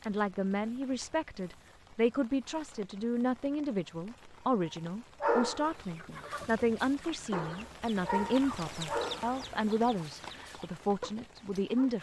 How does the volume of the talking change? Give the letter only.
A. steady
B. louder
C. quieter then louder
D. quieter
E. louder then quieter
A.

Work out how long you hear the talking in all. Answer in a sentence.
The talking can be heard for 12 seconds in total.